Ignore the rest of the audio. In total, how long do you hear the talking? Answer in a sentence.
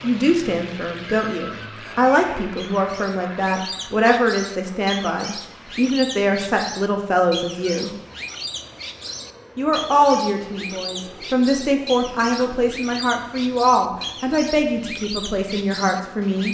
The talking can be heard for 15 seconds in total.